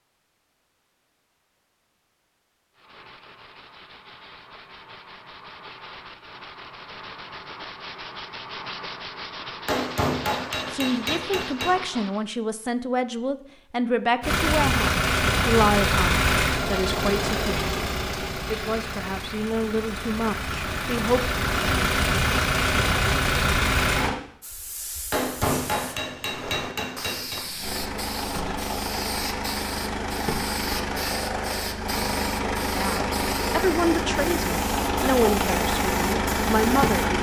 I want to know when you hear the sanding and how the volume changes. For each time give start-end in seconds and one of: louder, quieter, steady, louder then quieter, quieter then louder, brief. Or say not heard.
2.8-12.2 louder.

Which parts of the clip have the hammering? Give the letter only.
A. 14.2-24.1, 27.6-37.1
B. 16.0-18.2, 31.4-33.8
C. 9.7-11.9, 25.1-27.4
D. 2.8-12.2
C.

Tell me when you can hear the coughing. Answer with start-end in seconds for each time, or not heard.
not heard.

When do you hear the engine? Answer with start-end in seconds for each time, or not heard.
14.2-24.1, 27.6-37.1.